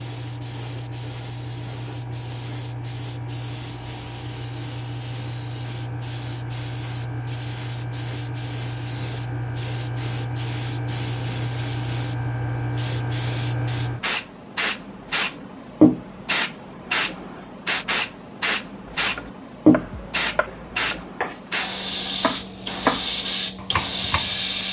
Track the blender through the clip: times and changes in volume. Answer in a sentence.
You can't hear the blender here.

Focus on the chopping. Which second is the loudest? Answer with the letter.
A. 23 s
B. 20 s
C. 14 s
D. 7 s
A.